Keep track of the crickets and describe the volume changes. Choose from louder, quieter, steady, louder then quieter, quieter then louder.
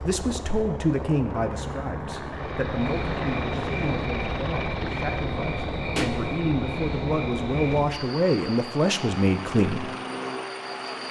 quieter.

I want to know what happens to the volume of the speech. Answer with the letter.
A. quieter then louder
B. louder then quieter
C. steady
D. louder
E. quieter
A.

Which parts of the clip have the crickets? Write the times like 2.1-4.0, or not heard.
2.3-11.0.